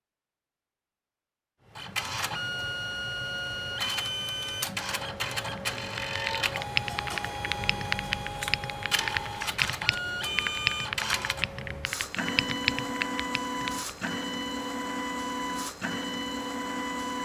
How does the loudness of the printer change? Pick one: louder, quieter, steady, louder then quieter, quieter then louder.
steady.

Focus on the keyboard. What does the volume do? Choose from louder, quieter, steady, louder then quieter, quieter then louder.
steady.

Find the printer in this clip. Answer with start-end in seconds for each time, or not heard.
1.6-17.2.